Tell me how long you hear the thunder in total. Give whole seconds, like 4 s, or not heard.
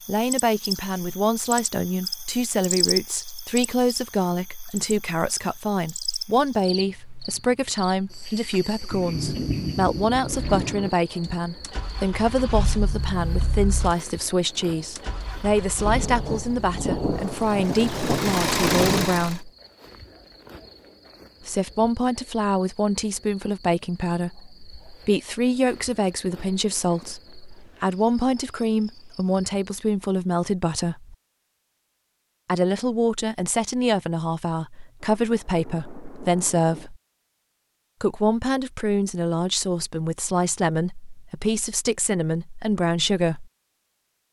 7 s.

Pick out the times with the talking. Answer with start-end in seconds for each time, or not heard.
0.1-19.5, 21.4-31.1, 32.5-37.0, 38.0-43.5.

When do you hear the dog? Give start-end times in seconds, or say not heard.
not heard.